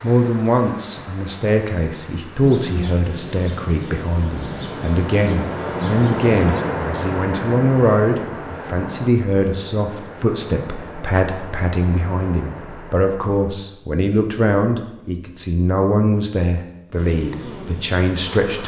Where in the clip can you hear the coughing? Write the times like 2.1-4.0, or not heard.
not heard.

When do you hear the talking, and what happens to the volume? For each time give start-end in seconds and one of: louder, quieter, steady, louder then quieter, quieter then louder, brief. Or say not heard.
0.0-18.6 steady.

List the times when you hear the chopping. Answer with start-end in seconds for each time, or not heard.
not heard.